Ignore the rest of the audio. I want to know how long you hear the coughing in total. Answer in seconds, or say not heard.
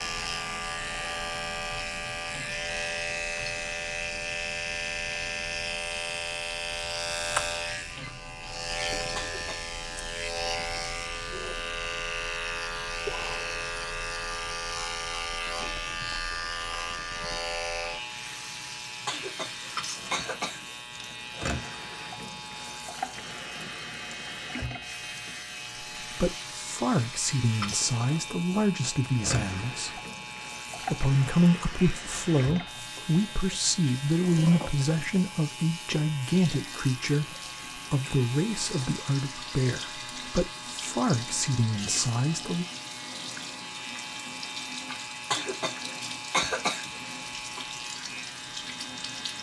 5 s.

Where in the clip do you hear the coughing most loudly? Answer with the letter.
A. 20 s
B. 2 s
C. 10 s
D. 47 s
D.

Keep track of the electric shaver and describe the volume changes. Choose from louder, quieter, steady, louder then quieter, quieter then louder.
quieter.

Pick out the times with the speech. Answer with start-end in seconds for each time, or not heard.
26.0-30.0, 30.8-42.6.